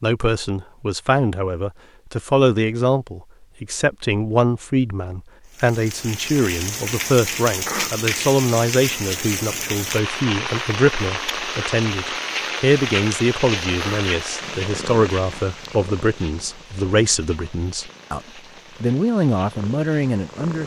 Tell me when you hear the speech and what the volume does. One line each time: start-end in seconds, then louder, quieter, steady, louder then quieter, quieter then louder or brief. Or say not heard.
0.0-18.2 steady
18.8-20.6 brief.